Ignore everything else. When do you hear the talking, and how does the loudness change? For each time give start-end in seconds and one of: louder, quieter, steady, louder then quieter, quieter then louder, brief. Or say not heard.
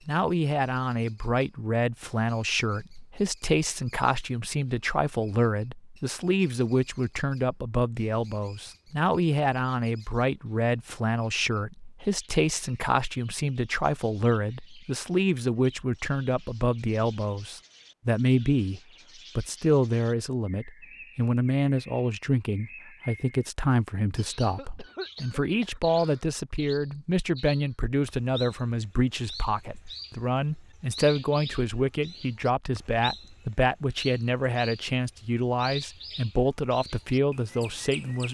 0.1-38.2 steady.